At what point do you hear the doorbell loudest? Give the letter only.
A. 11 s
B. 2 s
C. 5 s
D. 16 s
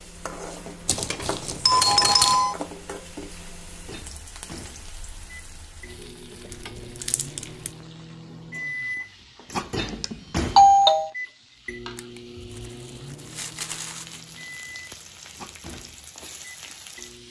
A.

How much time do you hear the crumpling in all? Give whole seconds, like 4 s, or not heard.
5 s.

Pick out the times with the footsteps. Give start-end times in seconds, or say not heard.
not heard.